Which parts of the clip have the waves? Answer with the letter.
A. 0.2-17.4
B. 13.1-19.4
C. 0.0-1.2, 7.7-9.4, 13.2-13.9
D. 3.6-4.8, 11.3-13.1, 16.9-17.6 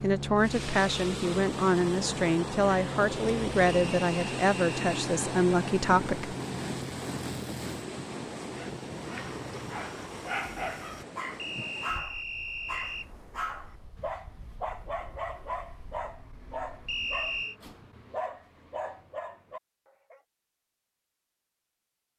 A.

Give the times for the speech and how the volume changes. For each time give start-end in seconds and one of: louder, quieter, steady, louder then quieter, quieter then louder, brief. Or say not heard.
0.0-6.3 steady.